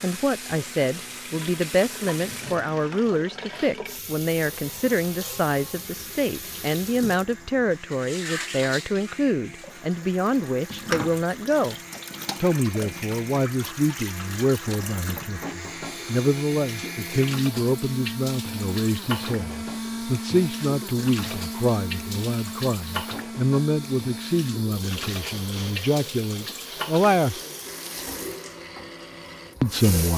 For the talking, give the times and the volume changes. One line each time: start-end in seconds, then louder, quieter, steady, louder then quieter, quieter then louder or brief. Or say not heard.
0.0-11.8 steady
12.4-27.4 steady
29.6-30.1 brief.